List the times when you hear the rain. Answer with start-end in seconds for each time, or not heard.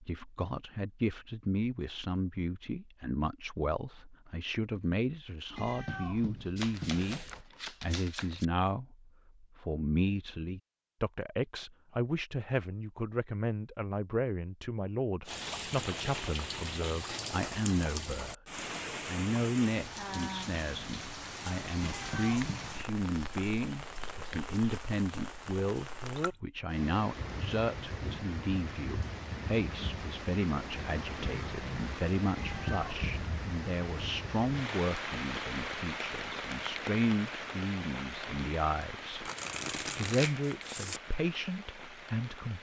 15.2-42.5.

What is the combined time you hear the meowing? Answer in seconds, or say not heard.
4 s.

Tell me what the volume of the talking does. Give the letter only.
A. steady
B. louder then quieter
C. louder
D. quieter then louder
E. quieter
A.